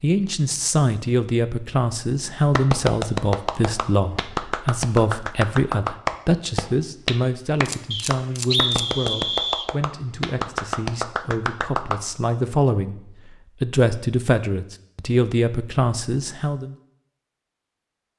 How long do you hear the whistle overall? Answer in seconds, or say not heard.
2 s.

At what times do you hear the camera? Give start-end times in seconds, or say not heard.
7.7-9.2.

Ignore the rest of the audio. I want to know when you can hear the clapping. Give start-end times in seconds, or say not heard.
2.5-12.0.